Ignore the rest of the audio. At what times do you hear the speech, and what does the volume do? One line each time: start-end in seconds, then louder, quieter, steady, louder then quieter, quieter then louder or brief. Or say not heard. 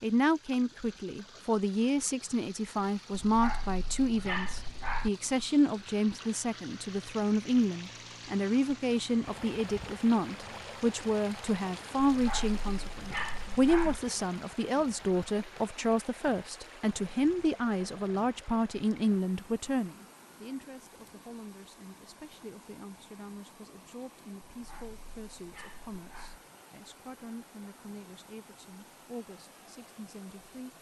0.0-30.7 quieter.